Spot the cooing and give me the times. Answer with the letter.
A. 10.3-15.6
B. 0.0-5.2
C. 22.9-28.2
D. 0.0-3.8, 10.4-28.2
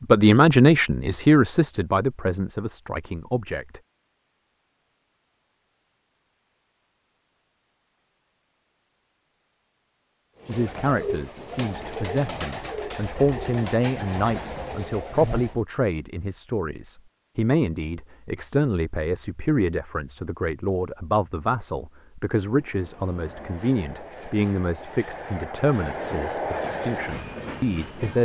A.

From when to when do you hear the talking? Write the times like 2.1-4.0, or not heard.
0.0-3.8, 10.4-28.2.